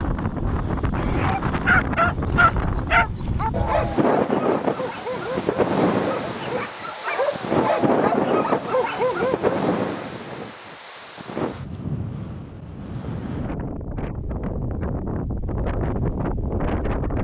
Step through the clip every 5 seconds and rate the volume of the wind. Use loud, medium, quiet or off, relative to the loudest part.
loud, loud, medium, loud.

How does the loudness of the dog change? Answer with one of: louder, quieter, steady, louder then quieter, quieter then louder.
quieter then louder.